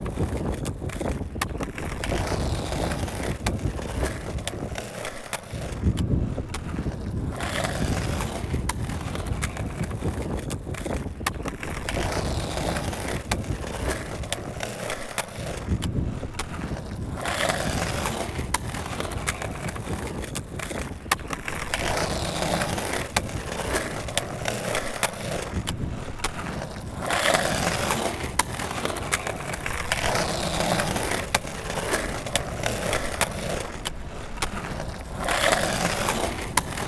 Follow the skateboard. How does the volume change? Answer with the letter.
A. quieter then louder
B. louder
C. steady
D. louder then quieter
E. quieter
B.